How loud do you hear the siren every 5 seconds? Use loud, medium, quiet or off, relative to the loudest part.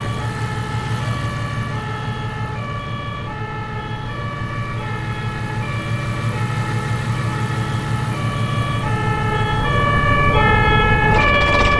quiet, medium, loud.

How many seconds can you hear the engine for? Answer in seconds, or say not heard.
12 s.